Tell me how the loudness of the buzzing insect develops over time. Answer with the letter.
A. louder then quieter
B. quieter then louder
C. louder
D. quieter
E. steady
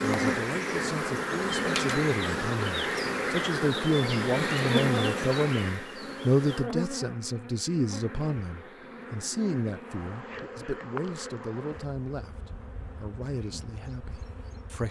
D.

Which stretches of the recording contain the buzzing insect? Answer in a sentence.
The buzzing insect can be heard from 0.0 to 14.8 s.